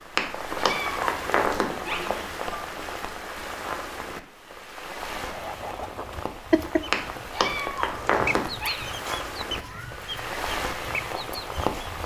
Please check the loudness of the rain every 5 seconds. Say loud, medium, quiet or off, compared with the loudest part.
loud, medium, loud.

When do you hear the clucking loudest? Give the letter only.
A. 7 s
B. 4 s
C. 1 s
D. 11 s
A.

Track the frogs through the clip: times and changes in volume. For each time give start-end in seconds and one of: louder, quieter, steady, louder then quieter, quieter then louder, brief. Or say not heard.
not heard.